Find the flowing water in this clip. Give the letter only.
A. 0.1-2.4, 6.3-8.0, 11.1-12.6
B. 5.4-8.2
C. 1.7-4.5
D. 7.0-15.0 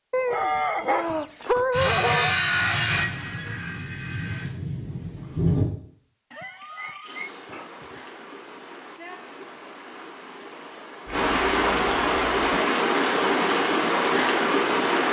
D.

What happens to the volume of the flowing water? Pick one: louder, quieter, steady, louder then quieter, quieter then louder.
louder.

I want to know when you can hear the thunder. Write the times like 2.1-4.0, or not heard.
1.8-5.7.